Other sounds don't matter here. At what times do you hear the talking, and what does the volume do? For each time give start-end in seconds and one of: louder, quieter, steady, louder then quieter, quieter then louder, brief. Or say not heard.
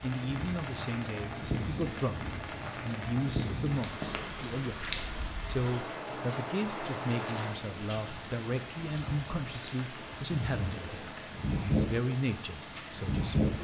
0.0-13.3 steady.